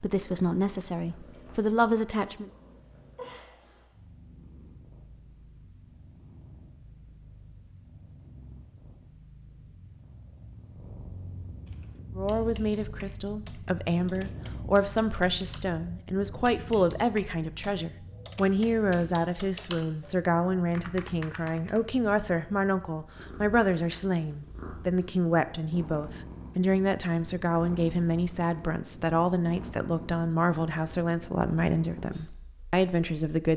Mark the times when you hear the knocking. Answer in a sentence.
You can't hear the knocking here.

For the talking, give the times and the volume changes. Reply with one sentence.
The talking can be heard briefly from 0.0 to 2.5 s; and from 12.2 to 33.5 s, at a steady volume.